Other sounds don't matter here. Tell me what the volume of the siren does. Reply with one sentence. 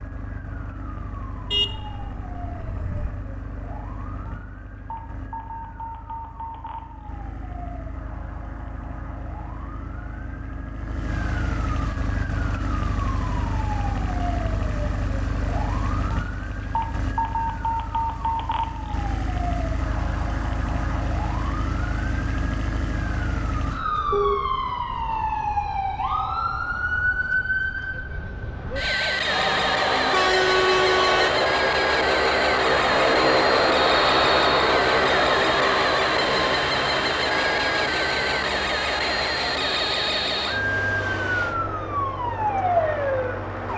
The volume of the siren goes up.